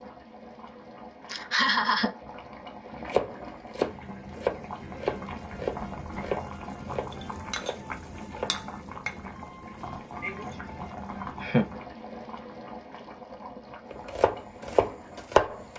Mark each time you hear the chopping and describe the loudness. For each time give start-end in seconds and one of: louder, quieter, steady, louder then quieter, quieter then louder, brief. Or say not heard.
3.1-8.8 quieter
13.9-15.6 brief.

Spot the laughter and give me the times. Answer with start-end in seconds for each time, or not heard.
1.3-2.1, 10.2-11.7.